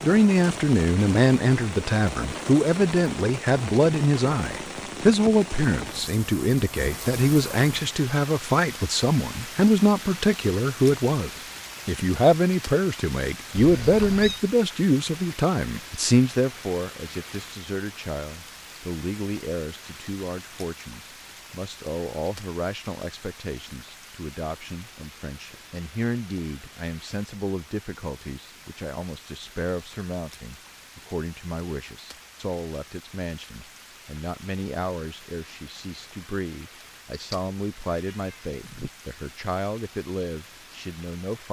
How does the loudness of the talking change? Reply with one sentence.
The volume of the talking goes down.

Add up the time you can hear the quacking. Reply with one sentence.
The quacking can't be heard in this clip.